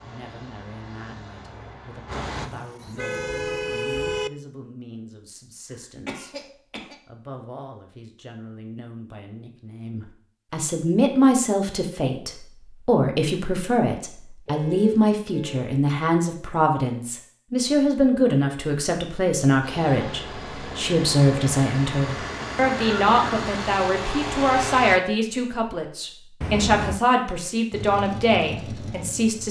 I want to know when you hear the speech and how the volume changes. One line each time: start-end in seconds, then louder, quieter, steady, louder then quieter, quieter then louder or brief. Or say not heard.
0.0-29.4 louder.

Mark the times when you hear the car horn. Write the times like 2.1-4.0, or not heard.
2.4-4.3, 14.4-15.8, 26.4-27.0.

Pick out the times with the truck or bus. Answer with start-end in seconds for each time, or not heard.
0.0-2.5, 19.6-25.0, 27.7-29.4.